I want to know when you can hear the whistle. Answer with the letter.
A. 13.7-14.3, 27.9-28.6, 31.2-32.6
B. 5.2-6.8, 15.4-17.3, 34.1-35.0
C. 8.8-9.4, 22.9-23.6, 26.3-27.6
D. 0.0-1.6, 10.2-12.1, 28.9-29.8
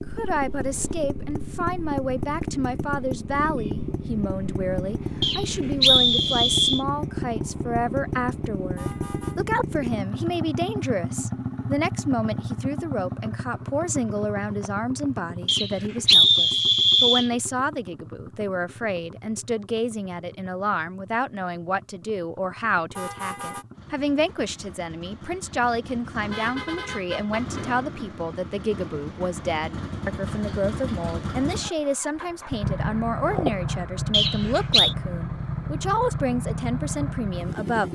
B.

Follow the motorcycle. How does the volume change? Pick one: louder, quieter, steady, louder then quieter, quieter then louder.
quieter then louder.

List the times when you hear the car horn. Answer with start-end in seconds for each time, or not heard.
8.8-9.4, 22.9-23.6, 26.3-27.6.